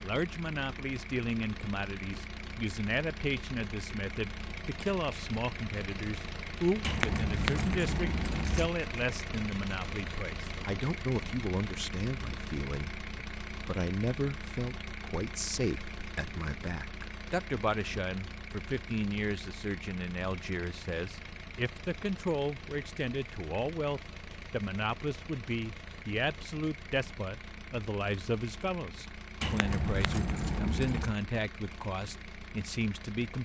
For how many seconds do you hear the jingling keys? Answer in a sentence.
You can hear the jingling keys for 4 seconds altogether.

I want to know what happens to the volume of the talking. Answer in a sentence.
The loudness of the talking stays about the same.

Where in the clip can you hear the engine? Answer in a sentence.
The engine can be heard from 0.0 to 33.4 s.